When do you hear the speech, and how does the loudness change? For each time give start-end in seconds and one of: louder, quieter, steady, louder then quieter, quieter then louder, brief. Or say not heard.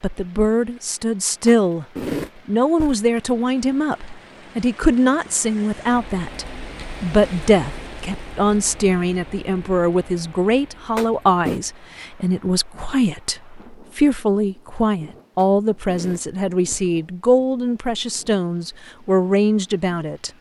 0.0-1.9 brief
2.5-20.3 steady.